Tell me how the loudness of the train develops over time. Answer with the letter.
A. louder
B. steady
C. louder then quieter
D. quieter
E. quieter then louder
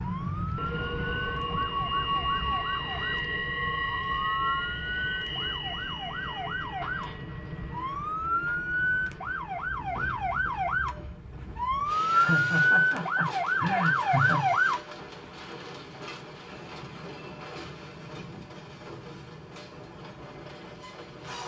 D.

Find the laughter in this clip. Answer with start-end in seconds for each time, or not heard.
12.1-14.6.